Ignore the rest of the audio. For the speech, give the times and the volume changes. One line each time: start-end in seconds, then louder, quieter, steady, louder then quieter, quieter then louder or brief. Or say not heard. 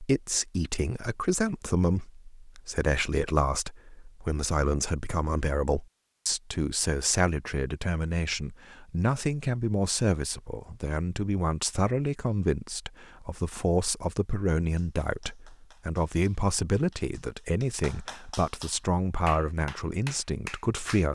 0.0-21.0 steady.